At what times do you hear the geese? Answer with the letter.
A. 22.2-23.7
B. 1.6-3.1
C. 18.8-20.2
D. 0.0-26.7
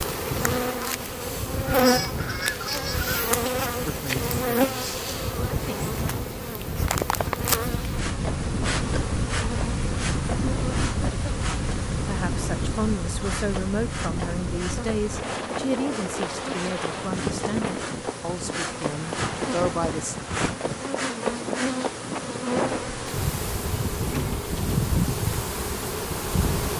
B.